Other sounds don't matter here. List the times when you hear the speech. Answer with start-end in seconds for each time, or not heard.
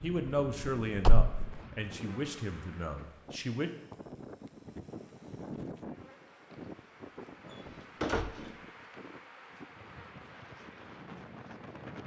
0.0-3.7.